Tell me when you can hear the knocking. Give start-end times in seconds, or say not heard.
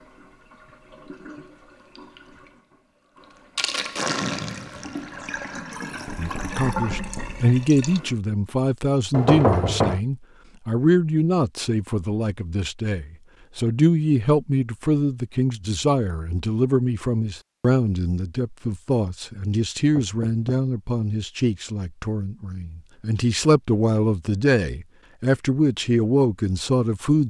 6.0-7.5, 9.1-10.0, 19.9-20.4.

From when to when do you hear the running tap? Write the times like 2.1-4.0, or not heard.
0.0-8.2.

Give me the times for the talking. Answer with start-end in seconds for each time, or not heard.
6.2-27.2.